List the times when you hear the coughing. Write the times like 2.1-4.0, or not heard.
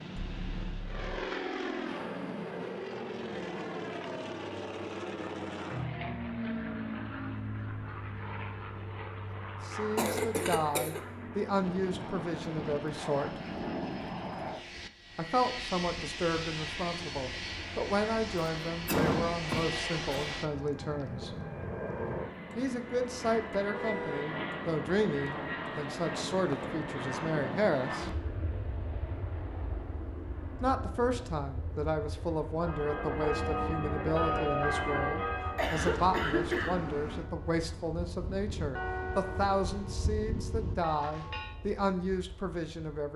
9.9-11.0, 18.9-20.4, 35.4-36.8.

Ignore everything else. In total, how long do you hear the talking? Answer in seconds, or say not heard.
28 s.